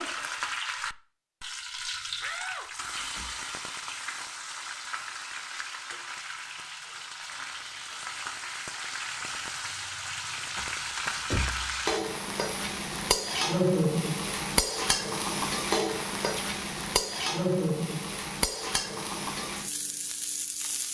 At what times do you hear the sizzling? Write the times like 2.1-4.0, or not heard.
0.0-20.8.